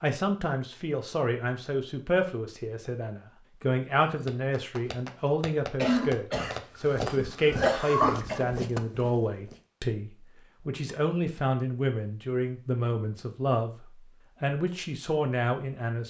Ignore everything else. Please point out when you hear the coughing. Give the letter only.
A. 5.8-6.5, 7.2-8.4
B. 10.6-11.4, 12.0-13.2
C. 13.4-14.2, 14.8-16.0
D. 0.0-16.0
A.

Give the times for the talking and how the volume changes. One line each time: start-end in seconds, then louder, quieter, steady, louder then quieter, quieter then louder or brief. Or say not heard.
0.0-16.0 steady.